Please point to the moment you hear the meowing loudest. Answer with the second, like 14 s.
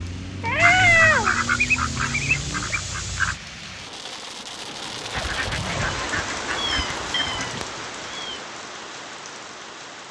1 s.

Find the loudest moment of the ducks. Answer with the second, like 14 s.
2 s.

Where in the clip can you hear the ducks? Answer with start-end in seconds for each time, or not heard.
0.6-3.4, 5.1-7.6.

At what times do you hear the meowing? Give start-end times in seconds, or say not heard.
0.4-1.4, 6.5-8.4.